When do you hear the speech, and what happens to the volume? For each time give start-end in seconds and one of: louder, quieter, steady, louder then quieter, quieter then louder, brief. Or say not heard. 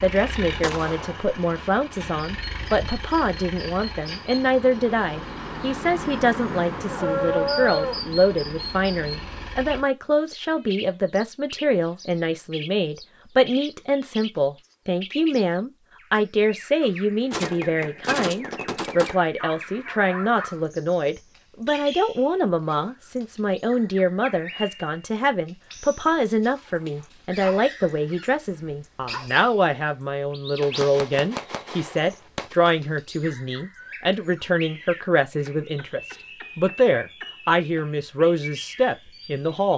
0.0-39.7 steady.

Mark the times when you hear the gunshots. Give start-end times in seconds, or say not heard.
0.6-1.2, 17.3-19.1, 30.6-32.5.